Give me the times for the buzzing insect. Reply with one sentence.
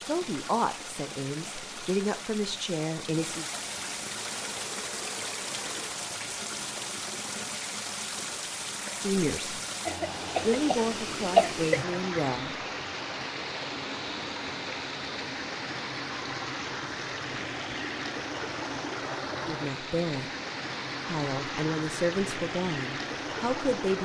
You can hear the buzzing insect from 4.2 to 5.9 s.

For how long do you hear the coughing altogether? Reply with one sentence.
The coughing can be heard for 2 seconds in total.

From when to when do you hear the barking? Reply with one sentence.
You can't hear the barking here.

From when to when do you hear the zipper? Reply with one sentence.
You can't hear the zipper here.